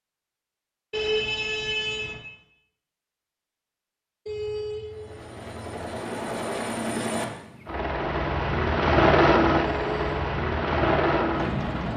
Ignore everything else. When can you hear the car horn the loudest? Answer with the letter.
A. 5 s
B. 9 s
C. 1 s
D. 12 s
C.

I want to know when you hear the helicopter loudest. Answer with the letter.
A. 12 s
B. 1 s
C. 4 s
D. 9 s
D.